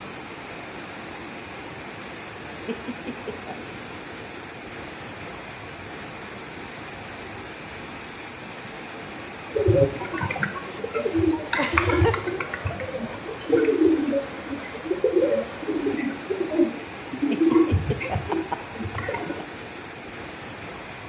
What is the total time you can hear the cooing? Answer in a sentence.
You can hear the cooing for 10 seconds altogether.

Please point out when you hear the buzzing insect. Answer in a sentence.
You can't hear the buzzing insect here.